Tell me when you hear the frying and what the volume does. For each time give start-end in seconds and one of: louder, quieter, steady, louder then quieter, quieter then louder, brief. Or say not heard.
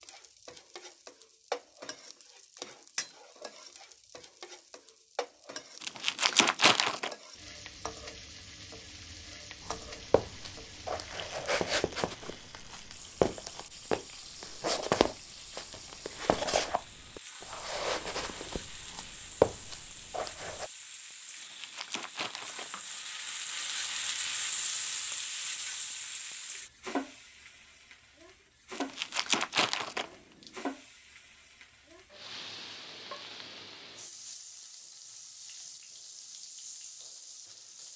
0.0-37.9 louder then quieter.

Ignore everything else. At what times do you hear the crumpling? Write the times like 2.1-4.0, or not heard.
5.8-7.1, 21.4-22.7, 28.8-30.5.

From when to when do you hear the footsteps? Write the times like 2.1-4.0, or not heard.
9.7-20.7.